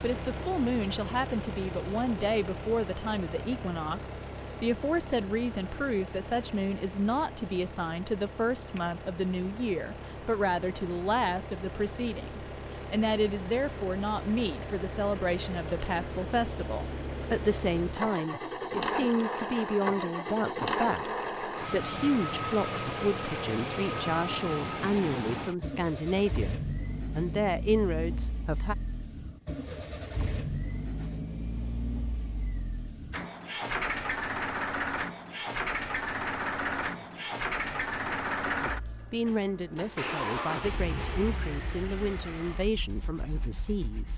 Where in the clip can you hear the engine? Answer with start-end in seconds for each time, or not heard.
0.0-44.1.